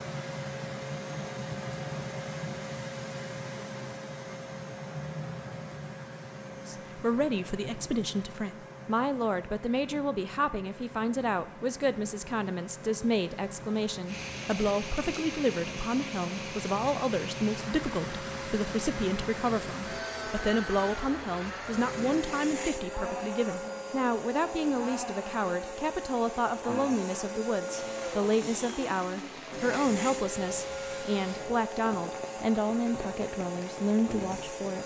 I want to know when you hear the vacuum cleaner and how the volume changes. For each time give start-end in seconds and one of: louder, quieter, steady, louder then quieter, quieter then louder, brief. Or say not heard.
0.0-34.8 quieter then louder.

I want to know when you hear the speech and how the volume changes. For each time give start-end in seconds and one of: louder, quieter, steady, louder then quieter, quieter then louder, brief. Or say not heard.
6.7-34.8 steady.